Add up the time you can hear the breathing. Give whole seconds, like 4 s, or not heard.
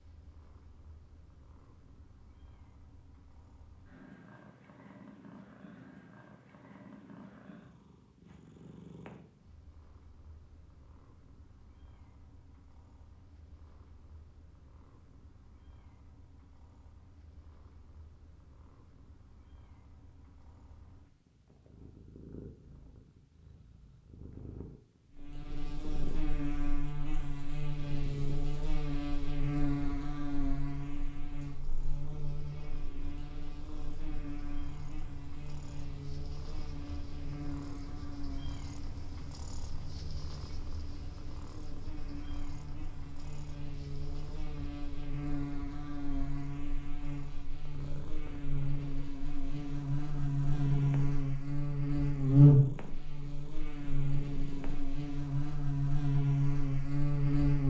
not heard.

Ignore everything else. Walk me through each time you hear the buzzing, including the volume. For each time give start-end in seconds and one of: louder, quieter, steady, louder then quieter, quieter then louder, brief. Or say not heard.
25.1-57.6 quieter then louder.